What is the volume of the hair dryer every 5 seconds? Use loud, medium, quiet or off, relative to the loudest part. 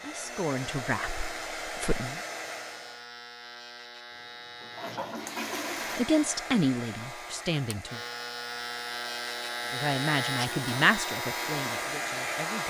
loud, medium, loud.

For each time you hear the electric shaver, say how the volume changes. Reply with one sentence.
The electric shaver can be heard from 0.0 to 12.6 s, getting louder.